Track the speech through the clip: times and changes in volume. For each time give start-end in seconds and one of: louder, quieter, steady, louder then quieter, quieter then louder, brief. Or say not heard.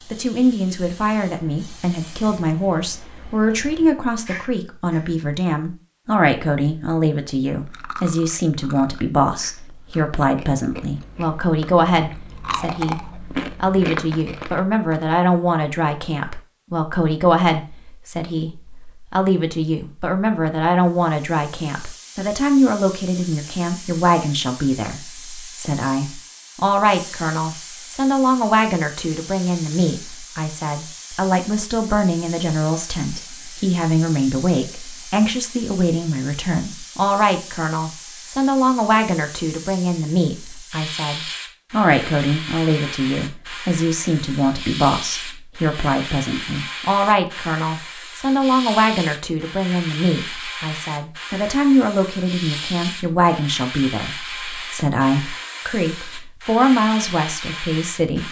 0.1-58.2 steady.